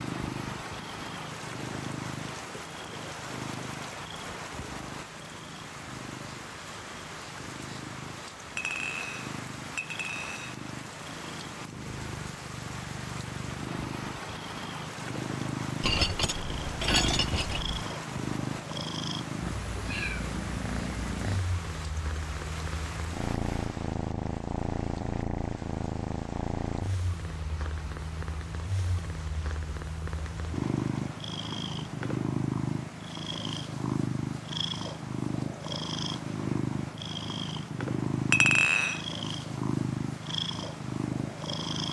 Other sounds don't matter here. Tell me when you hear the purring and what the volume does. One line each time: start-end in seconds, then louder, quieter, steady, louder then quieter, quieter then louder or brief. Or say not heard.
0.0-41.8 louder.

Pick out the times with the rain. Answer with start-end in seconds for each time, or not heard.
0.0-41.6.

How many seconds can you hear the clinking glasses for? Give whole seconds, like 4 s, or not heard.
5 s.